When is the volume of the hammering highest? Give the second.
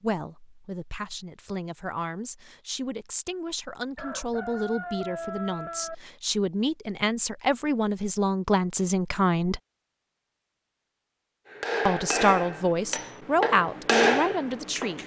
14 s.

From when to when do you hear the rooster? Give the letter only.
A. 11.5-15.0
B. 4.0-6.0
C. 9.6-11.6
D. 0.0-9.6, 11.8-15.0
B.